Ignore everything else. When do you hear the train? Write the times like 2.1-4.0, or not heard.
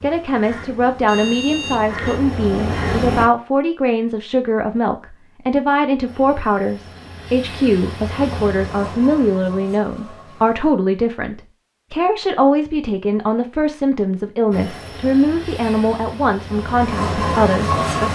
0.0-3.2, 6.0-10.7, 14.5-18.1.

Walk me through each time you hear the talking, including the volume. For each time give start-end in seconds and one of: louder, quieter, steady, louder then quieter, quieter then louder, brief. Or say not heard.
0.0-18.1 steady.